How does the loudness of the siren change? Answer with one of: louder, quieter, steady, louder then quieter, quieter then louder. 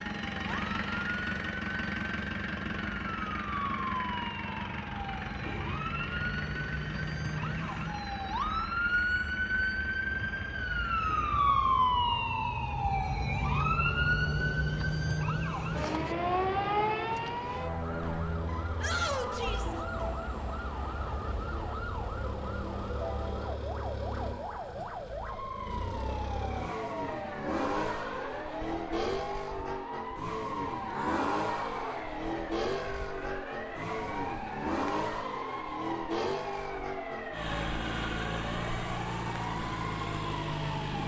louder then quieter.